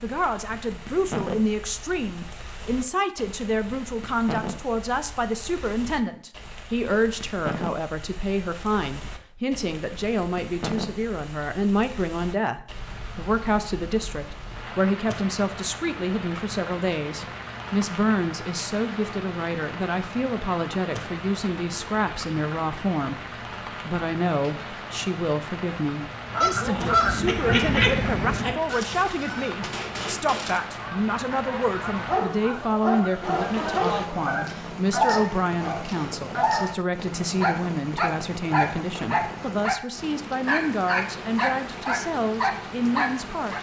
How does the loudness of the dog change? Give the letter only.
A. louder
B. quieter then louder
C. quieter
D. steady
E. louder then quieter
D.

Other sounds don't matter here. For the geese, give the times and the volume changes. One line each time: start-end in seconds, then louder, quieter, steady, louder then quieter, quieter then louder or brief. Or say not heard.
26.3-34.5 quieter.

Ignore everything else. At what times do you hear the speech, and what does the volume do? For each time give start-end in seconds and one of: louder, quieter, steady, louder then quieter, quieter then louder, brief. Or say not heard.
0.0-43.5 steady.